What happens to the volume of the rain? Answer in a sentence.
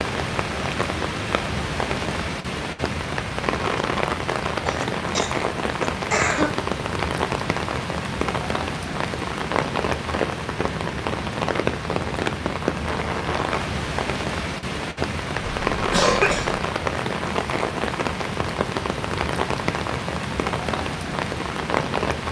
The loudness of the rain stays about the same.